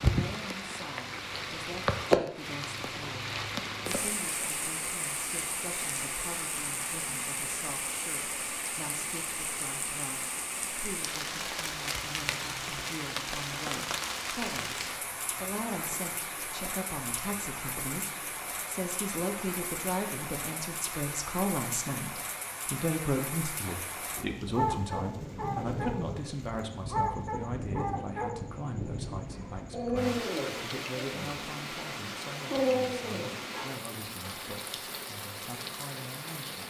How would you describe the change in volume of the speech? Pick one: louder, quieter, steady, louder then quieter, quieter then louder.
louder then quieter.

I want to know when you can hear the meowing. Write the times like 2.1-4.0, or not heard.
not heard.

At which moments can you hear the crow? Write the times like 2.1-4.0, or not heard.
not heard.